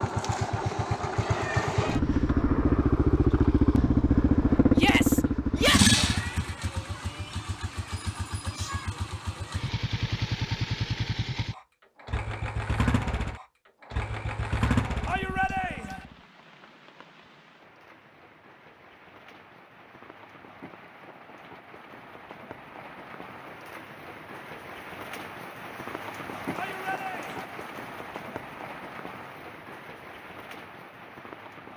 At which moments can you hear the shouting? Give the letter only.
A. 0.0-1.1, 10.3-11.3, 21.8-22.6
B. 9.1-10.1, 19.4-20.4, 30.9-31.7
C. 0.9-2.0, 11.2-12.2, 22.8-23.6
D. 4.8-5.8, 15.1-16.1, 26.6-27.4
D.